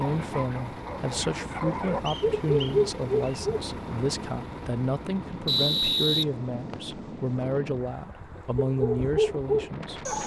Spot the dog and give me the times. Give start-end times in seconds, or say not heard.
0.0-3.6, 8.7-10.2.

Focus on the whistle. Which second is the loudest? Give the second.
6 s.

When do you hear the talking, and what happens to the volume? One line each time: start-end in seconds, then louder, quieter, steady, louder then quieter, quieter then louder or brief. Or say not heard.
0.0-10.1 steady.